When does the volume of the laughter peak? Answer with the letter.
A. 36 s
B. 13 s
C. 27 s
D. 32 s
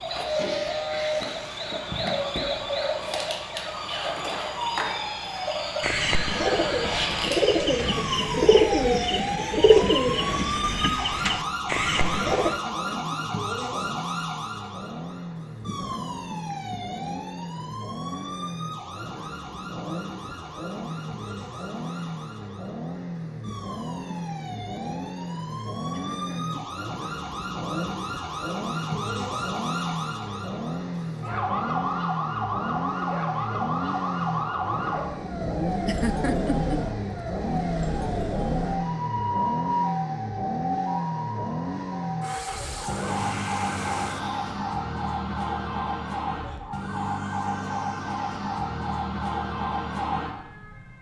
A.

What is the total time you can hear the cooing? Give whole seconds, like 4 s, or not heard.
7 s.